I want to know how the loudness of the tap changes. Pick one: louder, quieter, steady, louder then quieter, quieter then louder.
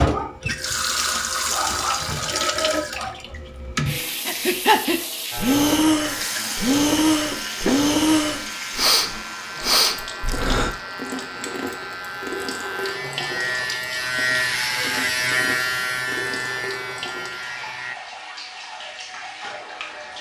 quieter.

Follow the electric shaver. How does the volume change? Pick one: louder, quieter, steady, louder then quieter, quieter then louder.
louder.